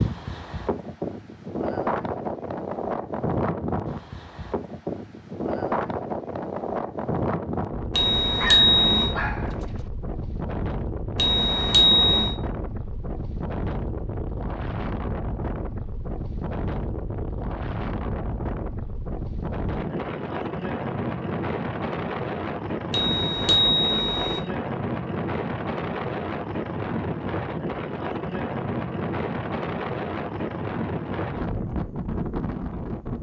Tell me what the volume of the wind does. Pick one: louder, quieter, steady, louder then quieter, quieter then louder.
steady.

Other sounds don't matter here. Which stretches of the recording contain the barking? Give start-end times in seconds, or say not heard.
8.3-9.9.